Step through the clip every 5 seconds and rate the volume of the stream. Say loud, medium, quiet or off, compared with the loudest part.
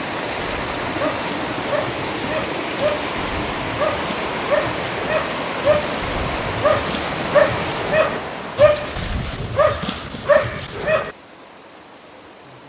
loud, loud, quiet.